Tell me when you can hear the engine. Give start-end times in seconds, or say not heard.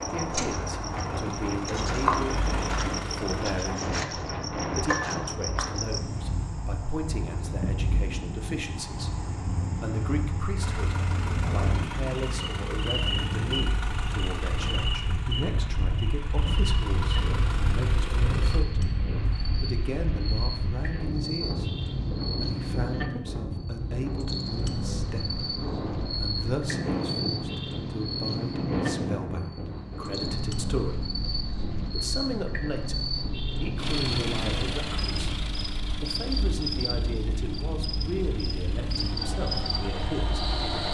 0.0-3.8, 10.6-18.6, 33.8-40.8.